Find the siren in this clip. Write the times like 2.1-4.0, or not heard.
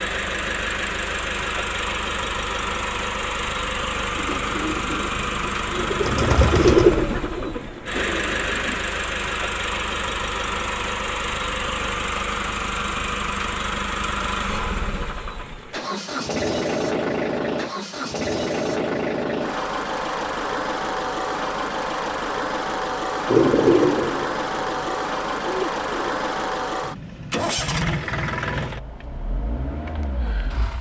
not heard.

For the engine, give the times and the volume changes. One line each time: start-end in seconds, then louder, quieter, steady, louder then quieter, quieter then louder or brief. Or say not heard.
0.0-30.7 steady.